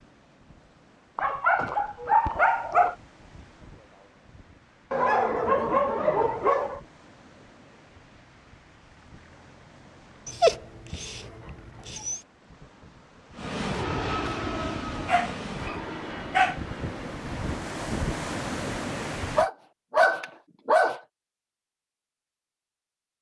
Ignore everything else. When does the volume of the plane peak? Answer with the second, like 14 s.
14 s.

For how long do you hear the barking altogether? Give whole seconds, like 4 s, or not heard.
9 s.